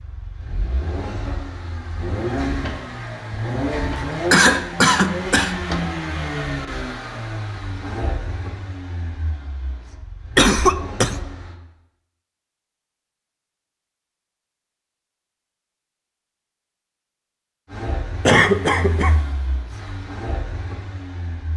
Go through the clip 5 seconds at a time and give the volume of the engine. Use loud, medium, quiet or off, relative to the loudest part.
loud, loud, medium, medium, medium.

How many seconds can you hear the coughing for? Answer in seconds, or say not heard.
3 s.